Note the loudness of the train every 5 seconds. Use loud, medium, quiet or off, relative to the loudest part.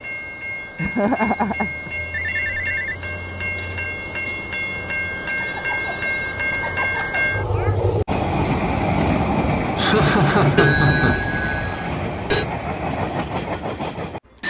medium, loud, loud.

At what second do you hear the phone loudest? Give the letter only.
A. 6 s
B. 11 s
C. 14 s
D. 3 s
B.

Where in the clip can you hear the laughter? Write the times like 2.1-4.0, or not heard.
0.8-1.9, 5.2-7.8, 9.8-11.2.